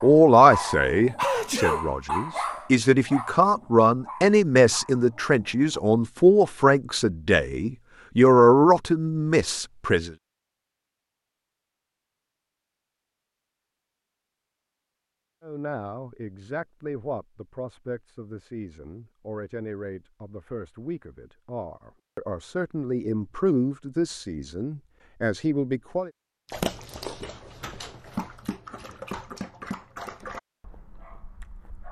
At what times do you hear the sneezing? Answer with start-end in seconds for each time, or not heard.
1.1-1.9.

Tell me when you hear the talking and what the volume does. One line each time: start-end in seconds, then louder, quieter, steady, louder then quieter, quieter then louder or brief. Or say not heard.
0.0-10.1 steady
15.4-26.1 louder.